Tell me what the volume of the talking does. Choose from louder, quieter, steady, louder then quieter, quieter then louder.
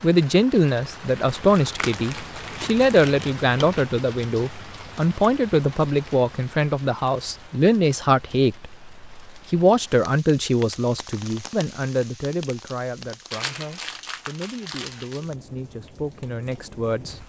quieter.